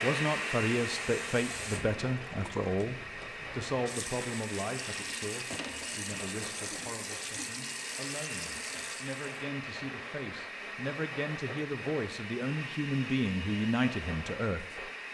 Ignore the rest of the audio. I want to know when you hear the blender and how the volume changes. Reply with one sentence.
You can hear the blender from 0.0 to 15.1 s, at a steady volume.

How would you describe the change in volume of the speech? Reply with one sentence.
The volume of the speech goes down, then up.